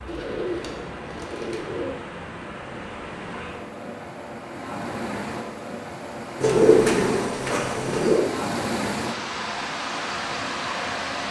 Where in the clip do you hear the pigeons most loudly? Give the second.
7 s.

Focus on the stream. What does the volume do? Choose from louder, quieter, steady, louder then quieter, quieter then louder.
louder.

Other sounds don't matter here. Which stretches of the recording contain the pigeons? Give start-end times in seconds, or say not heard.
0.1-1.9, 6.4-8.2.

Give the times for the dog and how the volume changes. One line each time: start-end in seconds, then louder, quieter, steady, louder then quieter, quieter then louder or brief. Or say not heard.
not heard.